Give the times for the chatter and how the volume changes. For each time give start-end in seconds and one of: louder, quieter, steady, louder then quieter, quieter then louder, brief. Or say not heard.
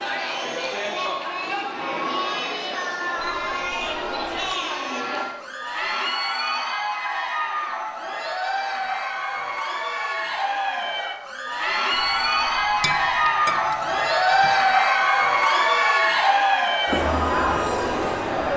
0.0-18.5 louder.